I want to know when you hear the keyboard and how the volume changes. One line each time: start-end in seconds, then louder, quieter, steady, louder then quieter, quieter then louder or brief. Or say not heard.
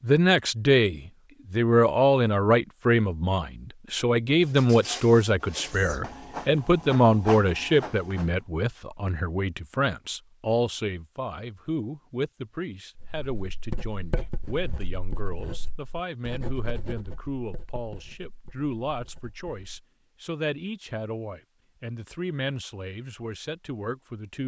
not heard.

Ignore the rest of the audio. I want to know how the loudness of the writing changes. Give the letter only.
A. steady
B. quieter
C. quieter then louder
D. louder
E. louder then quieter
B.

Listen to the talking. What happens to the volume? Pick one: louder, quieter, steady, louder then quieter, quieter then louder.
quieter.